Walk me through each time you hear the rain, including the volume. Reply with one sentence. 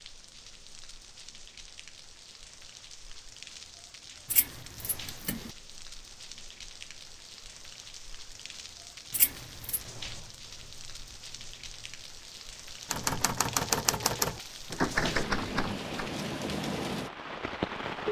The rain can be heard from 0.0 to 18.0 s, getting louder.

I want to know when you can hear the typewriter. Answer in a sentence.
You can hear the typewriter from 12.9 to 16.1 s.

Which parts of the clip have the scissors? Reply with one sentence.
The scissors can be heard from 4.3 to 5.5 s and from 9.1 to 9.8 s.